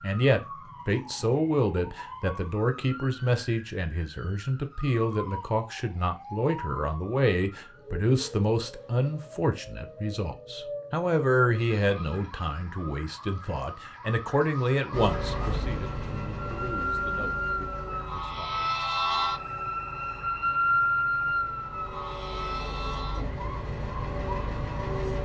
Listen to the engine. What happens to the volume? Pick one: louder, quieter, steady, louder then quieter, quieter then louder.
quieter then louder.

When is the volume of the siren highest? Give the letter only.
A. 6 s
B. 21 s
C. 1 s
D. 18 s
B.